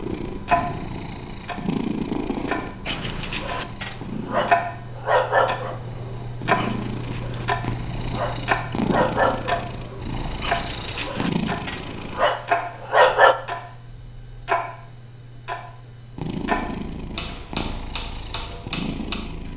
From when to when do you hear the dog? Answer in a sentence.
You can hear the dog from 2.9 to 13.3 s.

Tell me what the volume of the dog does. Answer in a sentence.
The loudness of the dog stays about the same.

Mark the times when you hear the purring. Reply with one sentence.
The purring can be heard from 0.0 to 12.2 s and from 16.1 to 19.5 s.